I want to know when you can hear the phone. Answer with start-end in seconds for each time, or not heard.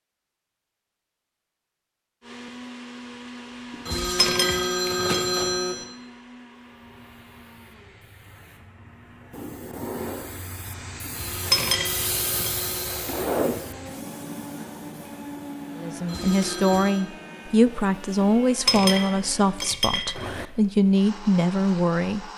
3.9-5.8, 11.1-13.0, 16.1-17.1.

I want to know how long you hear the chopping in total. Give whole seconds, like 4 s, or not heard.
not heard.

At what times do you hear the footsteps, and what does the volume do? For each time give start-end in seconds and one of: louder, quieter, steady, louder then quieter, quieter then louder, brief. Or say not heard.
not heard.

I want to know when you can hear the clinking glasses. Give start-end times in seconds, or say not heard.
3.7-5.2, 11.1-12.5, 18.2-20.2.